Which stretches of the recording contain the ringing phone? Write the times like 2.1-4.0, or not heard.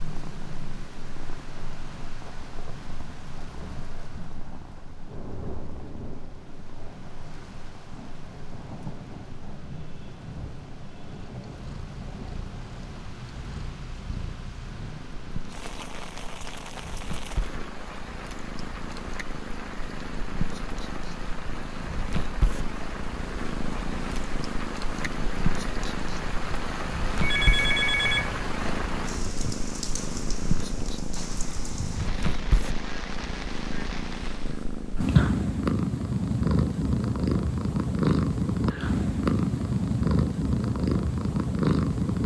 27.2-28.7.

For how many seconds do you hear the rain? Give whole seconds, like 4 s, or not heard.
35 s.